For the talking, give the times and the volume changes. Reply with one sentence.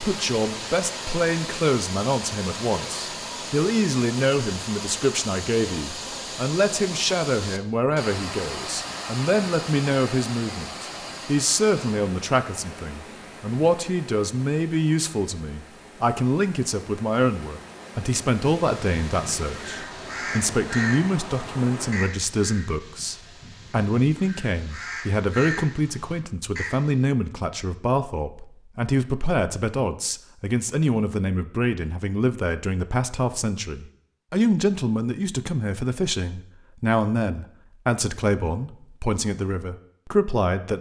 The talking can be heard from 0.0 to 40.7 s, at a steady volume.